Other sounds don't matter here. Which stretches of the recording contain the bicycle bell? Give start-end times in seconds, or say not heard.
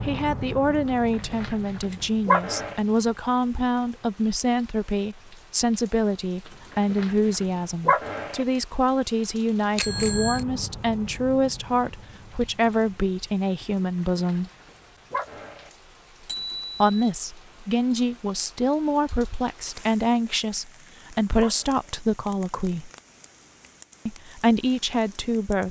9.8-10.4, 16.2-16.9.